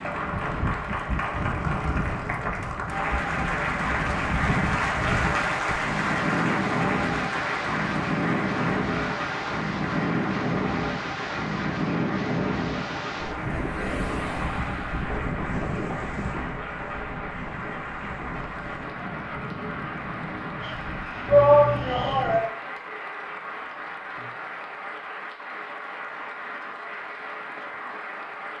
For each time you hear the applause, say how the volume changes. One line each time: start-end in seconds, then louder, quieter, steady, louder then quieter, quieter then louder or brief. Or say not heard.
0.0-28.5 quieter.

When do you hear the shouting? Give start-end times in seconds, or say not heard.
21.2-22.5.